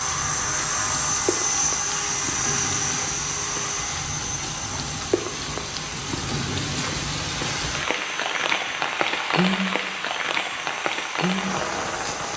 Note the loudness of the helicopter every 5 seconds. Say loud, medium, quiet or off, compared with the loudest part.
loud, medium, medium.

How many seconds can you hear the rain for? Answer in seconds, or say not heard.
12 s.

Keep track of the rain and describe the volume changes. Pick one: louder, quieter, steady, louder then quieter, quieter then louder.
louder.